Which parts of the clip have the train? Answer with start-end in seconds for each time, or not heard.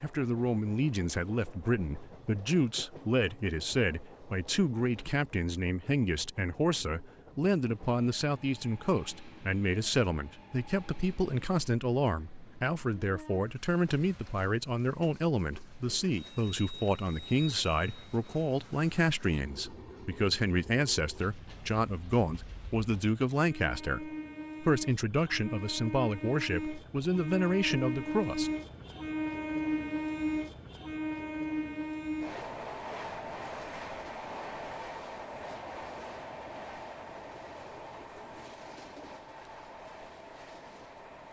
0.0-41.2.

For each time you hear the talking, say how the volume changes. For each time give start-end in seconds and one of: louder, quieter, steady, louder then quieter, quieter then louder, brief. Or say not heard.
0.0-28.5 steady.